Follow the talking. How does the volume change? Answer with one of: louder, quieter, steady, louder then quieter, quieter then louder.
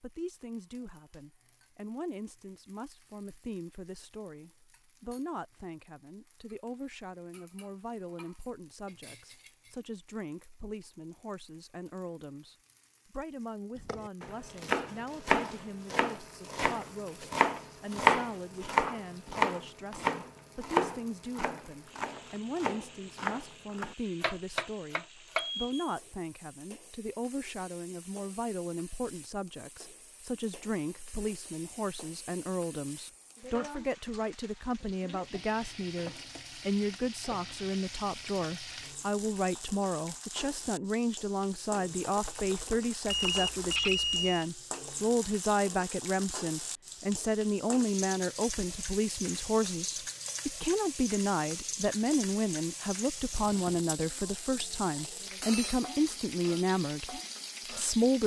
louder.